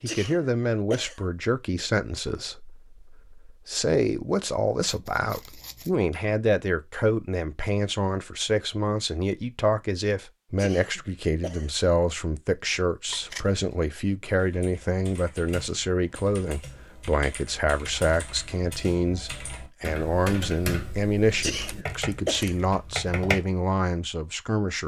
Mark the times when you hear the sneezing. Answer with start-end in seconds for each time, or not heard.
0.1-1.2, 10.6-11.8, 21.4-22.6.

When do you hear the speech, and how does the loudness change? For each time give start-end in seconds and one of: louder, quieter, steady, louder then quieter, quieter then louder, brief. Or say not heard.
0.0-24.8 steady.